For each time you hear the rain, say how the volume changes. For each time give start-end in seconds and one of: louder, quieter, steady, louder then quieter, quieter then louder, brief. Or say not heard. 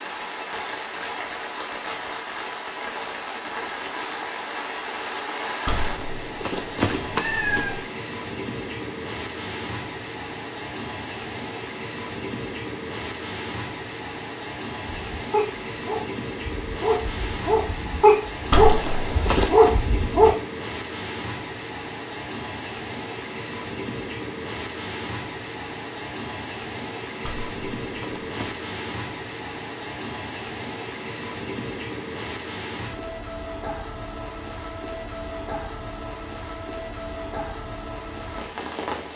0.0-39.1 steady.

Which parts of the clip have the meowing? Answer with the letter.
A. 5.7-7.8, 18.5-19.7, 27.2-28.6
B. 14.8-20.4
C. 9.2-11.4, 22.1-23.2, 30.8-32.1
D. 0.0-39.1
A.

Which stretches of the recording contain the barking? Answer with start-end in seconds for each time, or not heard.
14.8-20.4.